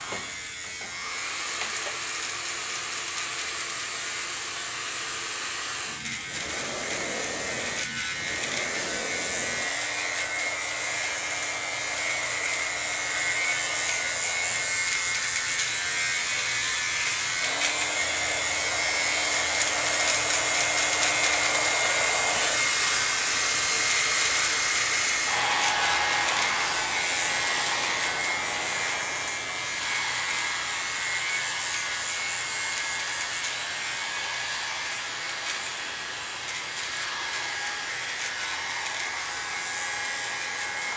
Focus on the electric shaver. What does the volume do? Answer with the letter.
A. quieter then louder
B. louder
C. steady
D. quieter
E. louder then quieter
E.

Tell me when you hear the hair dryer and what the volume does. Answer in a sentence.
The hair dryer can be heard from 0.0 to 40.9 s, getting louder then quieter.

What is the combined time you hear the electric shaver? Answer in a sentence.
You can hear the electric shaver for 41 seconds altogether.